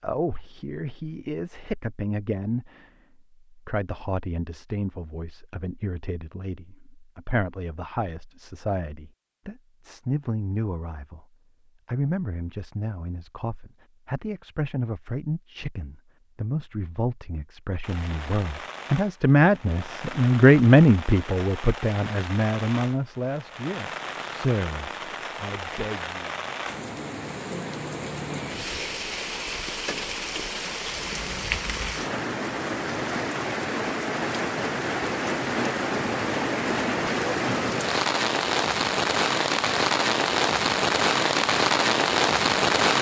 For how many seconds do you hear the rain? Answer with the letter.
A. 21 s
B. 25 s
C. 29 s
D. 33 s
B.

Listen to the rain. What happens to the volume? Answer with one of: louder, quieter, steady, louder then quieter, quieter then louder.
louder.